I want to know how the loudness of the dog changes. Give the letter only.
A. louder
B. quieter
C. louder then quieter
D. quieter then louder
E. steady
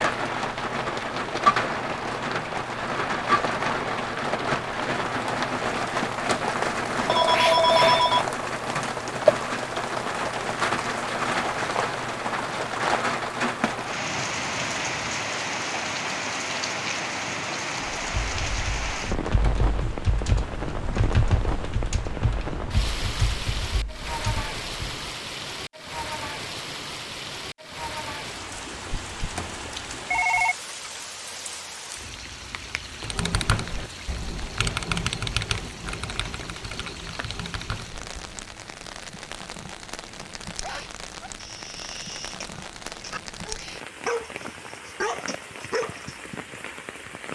A.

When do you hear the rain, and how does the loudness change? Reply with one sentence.
You can hear the rain from 0.0 to 47.3 s, getting quieter.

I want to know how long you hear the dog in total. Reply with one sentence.
You can hear the dog for 6 seconds altogether.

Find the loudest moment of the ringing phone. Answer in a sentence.
The loudest moment of the ringing phone is at 8 seconds.